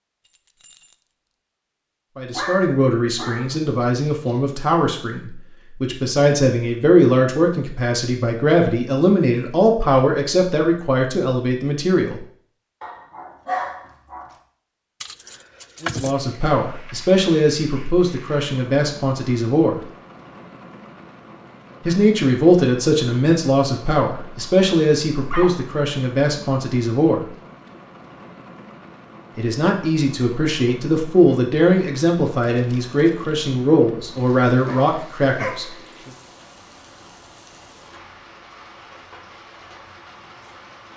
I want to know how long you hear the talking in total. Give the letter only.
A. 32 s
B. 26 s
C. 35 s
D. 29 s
B.